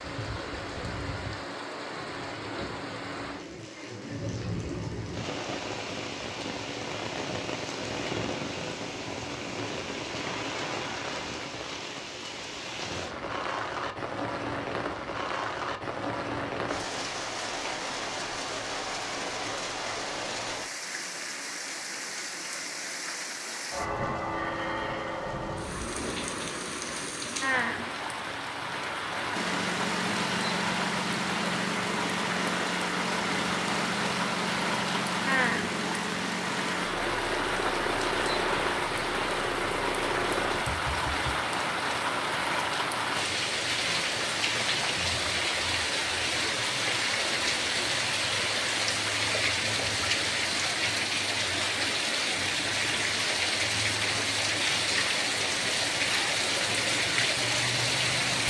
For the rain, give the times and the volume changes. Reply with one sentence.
You can hear the rain from 0.0 to 58.4 s, getting louder.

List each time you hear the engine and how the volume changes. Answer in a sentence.
The engine can be heard from 29.3 to 41.4 s, at a steady volume.